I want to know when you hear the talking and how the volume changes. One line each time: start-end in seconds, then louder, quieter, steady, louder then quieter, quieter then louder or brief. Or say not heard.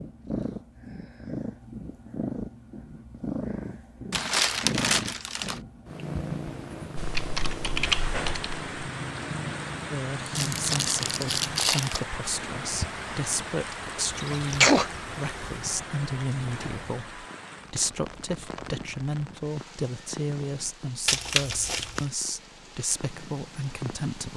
9.9-24.3 steady.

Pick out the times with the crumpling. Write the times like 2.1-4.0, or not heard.
4.1-5.6, 10.3-12.1, 21.1-22.1.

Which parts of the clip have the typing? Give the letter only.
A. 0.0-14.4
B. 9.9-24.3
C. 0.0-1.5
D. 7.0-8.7
D.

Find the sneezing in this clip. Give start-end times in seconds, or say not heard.
14.1-15.6.